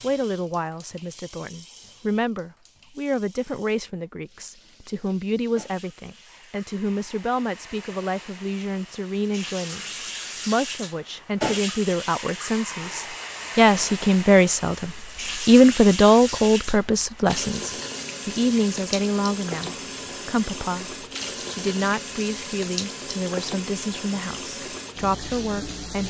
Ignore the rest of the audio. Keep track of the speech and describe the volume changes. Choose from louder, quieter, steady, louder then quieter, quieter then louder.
louder then quieter.